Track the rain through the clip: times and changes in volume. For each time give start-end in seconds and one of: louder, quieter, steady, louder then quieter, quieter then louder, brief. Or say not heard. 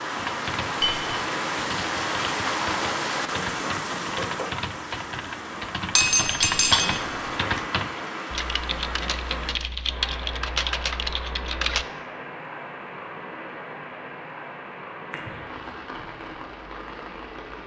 0.0-17.6 quieter.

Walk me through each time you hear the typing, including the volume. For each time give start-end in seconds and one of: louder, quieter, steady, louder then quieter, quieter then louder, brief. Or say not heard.
0.1-11.8 louder.